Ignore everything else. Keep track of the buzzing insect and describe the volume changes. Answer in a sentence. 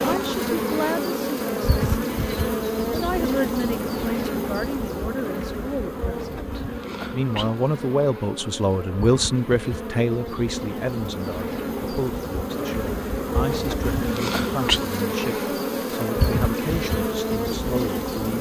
The volume of the buzzing insect goes down, then up.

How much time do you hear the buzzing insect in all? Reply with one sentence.
The buzzing insect can be heard for 18 seconds in total.